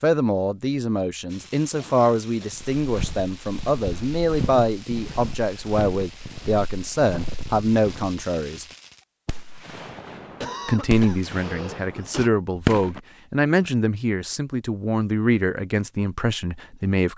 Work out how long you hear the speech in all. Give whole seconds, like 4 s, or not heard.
15 s.